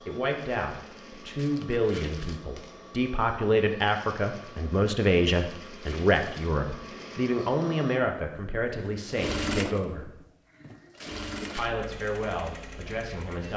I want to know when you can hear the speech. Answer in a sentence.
You can hear the speech from 0.0 to 10.1 s and from 11.6 to 13.5 s.